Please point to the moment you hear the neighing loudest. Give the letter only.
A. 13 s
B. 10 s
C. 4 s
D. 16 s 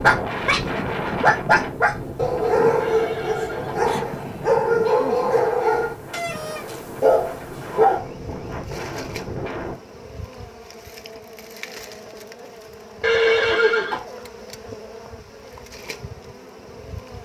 A.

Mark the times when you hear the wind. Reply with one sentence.
The wind can be heard from 0.0 to 9.8 s.